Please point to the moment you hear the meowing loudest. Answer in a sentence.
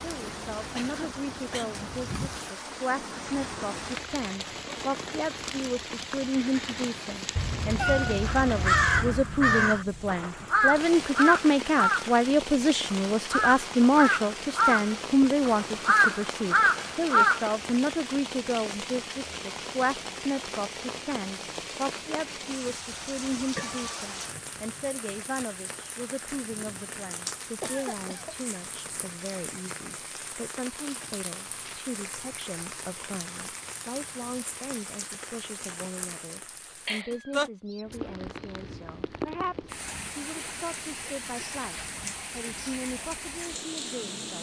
The volume of the meowing peaks at 8 seconds.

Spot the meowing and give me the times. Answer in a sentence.
You can hear the meowing from 7.3 to 9.2 s, from 23.6 to 24.0 s and from 36.9 to 37.9 s.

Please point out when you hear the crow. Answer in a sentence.
The crow can be heard from 8.2 to 17.6 s.